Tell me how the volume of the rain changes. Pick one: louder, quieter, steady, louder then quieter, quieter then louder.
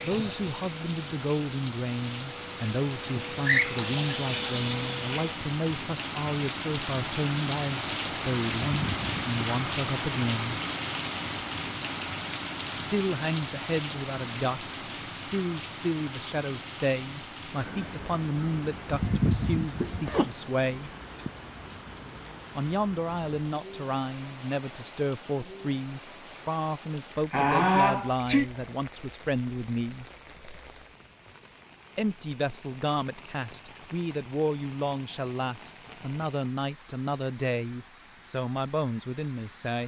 quieter.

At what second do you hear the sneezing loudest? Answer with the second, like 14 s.
28 s.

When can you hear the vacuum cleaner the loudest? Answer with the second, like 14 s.
4 s.